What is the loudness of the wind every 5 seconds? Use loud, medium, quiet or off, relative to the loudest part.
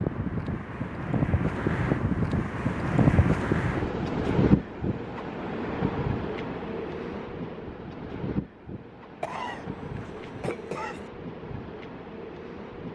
loud, medium, quiet.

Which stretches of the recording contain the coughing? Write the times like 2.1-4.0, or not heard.
9.2-11.1.